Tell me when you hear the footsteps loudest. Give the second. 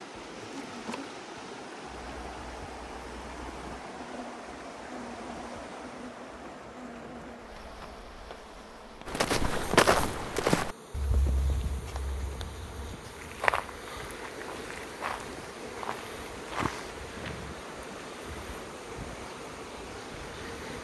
10 s.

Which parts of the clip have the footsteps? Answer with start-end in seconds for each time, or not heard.
9.1-17.6.